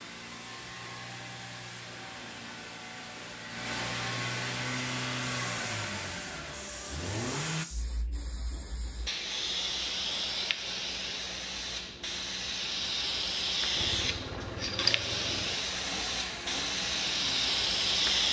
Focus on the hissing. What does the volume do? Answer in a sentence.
The loudness of the hissing goes up.